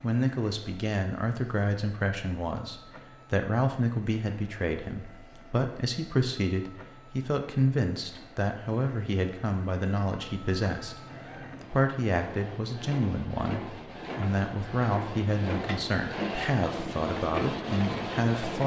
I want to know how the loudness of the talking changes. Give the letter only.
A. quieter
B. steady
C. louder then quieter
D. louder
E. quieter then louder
B.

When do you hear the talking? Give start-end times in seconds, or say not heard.
0.0-18.6.